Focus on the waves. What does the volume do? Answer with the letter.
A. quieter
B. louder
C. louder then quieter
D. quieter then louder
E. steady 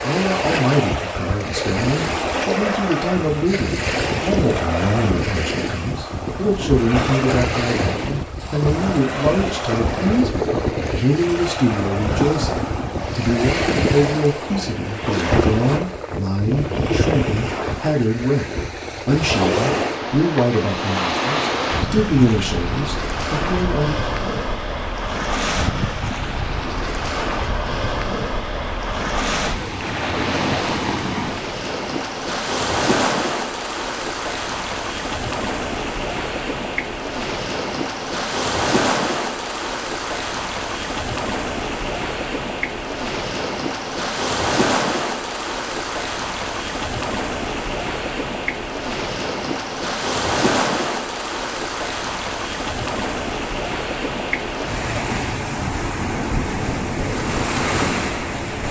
E.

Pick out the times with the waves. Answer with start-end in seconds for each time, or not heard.
0.0-58.6.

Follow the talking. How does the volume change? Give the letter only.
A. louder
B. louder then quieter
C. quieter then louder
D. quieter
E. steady
E.